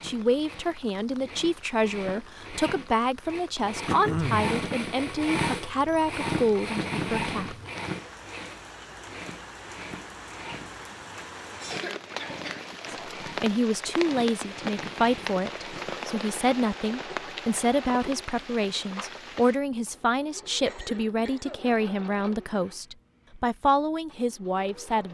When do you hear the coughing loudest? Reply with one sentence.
The volume of the coughing peaks at 4 seconds.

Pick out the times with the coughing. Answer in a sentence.
You can hear the coughing from 3.9 to 4.5 s, from 11.7 to 13.1 s and from 20.6 to 21.8 s.